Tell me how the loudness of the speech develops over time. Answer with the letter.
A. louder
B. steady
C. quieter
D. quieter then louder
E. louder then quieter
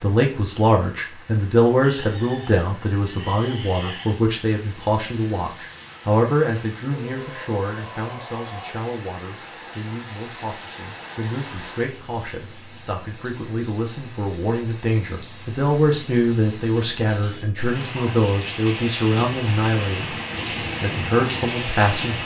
D.